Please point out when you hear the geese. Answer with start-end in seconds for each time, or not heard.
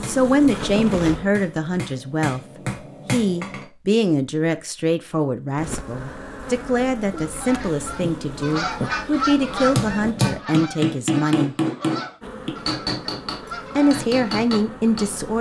7.1-14.1.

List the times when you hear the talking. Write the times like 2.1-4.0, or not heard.
0.0-2.4, 3.1-11.6, 13.8-15.3.